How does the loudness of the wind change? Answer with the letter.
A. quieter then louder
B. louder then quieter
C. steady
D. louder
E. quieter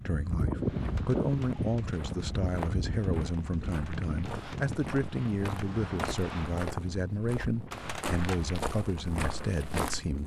E.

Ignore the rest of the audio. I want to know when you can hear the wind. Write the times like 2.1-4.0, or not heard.
0.0-10.2.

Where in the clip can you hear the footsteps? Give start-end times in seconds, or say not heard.
0.2-10.2.